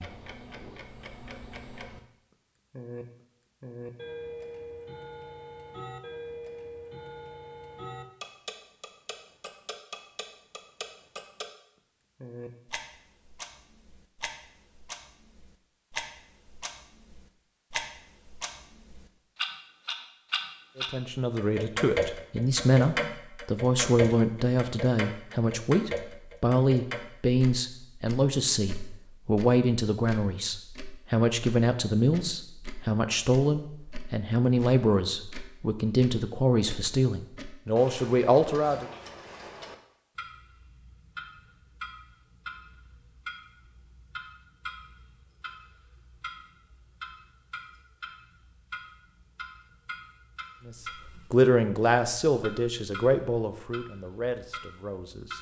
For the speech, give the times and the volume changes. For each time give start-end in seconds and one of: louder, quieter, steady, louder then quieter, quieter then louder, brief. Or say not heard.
20.8-38.9 steady
50.6-55.3 quieter.